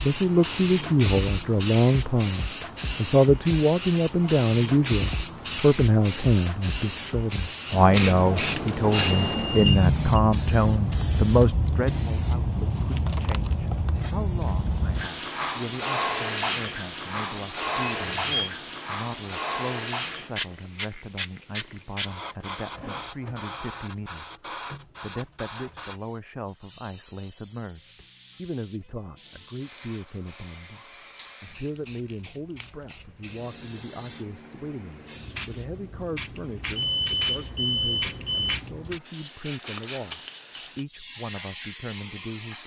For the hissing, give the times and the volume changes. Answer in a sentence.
You can hear the hissing from 0.0 to 42.6 s, getting quieter then louder.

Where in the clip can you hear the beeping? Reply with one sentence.
The beeping can be heard from 8.9 to 10.2 s, from 18.0 to 18.5 s and from 36.6 to 38.5 s.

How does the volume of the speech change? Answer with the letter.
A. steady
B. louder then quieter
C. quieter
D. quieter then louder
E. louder
C.